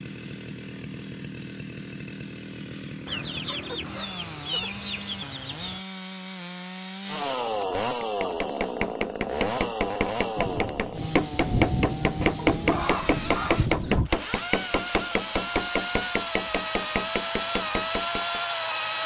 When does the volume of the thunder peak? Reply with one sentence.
The volume of the thunder peaks at 12 seconds.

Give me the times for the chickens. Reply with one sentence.
The chickens can be heard from 3.0 to 5.8 s and from 12.2 to 14.1 s.